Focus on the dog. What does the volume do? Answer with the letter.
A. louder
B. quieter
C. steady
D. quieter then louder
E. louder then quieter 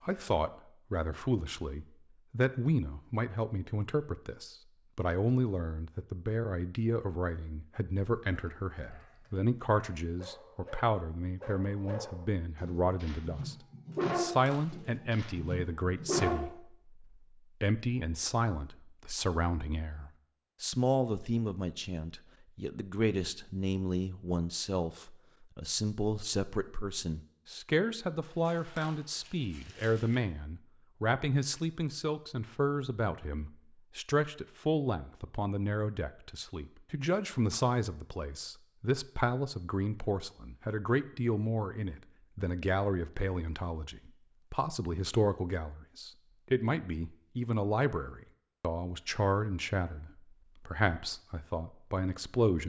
E.